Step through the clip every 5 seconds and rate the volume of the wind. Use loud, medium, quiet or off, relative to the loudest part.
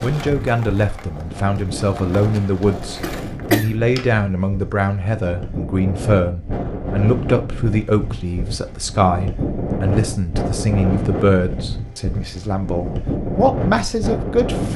medium, loud, loud.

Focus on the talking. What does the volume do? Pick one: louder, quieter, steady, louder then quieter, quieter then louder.
steady.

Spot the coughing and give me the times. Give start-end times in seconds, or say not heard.
3.0-3.8.